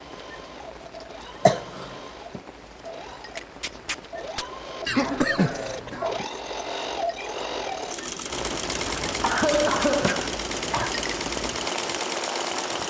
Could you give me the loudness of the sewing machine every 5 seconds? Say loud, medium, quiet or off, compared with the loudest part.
medium, loud, loud.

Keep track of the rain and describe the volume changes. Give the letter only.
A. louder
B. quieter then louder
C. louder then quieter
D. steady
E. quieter
A.